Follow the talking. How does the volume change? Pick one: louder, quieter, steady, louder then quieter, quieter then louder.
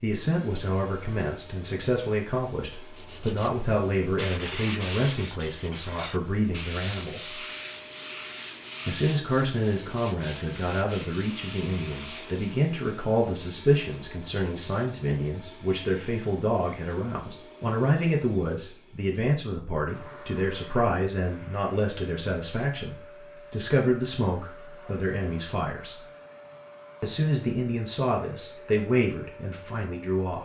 steady.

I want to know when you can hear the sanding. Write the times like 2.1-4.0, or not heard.
2.9-12.6.